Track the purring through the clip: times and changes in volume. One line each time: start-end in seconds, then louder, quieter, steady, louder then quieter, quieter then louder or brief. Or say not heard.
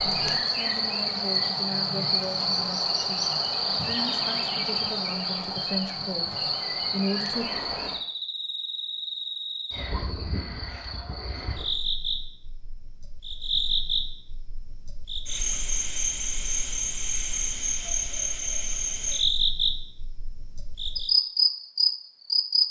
not heard.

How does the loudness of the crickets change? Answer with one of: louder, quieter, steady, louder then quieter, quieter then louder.
quieter then louder.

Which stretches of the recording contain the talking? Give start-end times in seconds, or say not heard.
0.2-7.5.